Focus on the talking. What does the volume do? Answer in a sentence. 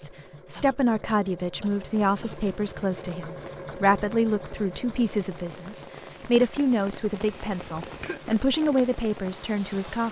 The loudness of the talking stays about the same.